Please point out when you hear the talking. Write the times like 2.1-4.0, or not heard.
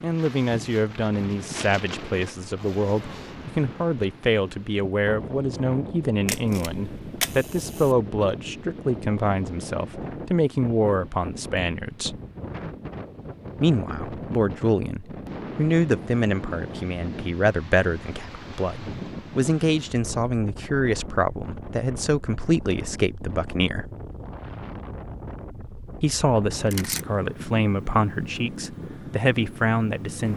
0.0-12.2, 13.6-23.9, 26.0-30.3.